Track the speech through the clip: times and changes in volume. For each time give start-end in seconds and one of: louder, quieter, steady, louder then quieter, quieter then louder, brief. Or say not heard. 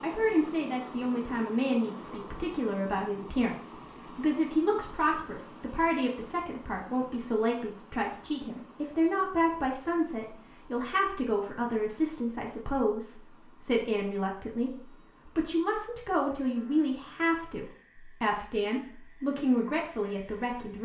0.0-20.8 steady.